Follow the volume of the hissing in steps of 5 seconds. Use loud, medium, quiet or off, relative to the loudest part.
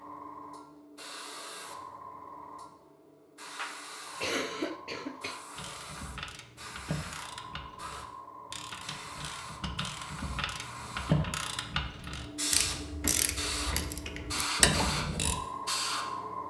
medium, medium, loud, loud.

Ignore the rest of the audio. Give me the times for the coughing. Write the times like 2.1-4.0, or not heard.
3.5-5.4.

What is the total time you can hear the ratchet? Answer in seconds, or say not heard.
10 s.